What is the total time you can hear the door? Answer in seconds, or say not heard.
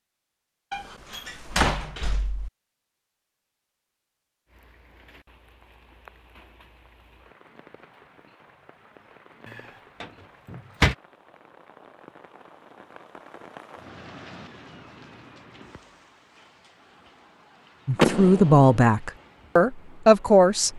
4 s.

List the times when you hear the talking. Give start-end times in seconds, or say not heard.
17.9-20.7.